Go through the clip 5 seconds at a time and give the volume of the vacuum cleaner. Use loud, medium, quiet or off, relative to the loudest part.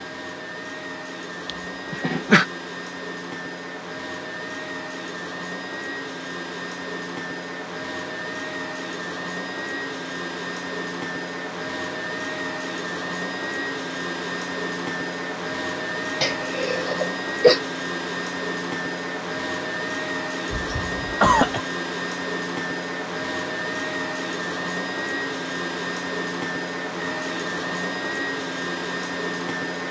medium, loud, loud, loud, loud, loud.